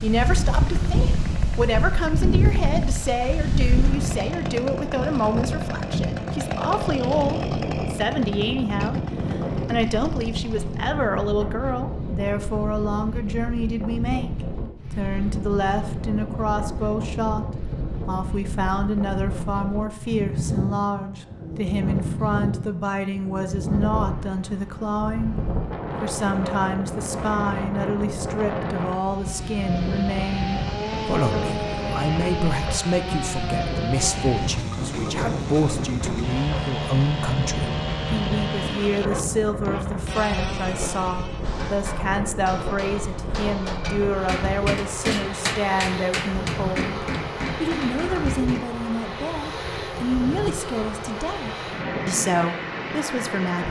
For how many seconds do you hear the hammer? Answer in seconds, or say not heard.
7 s.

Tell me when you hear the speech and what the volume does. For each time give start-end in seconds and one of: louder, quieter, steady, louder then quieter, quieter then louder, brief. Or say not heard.
0.0-14.3 steady
14.9-25.4 steady
26.0-53.6 steady.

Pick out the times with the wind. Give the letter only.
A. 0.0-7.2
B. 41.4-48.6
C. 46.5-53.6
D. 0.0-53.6
D.